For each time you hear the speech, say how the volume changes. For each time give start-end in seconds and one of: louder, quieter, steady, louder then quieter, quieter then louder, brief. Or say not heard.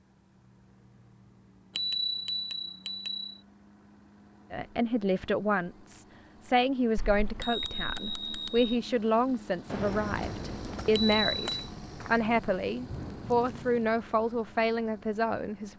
4.5-15.7 steady.